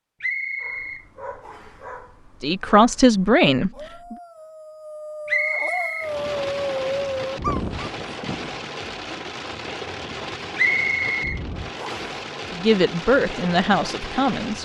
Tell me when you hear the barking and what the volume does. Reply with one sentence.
The barking can be heard from 0.6 to 8.7 s, getting louder.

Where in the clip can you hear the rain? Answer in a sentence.
You can hear the rain from 6.0 to 14.6 s.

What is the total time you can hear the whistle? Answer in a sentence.
You can hear the whistle for 4 seconds altogether.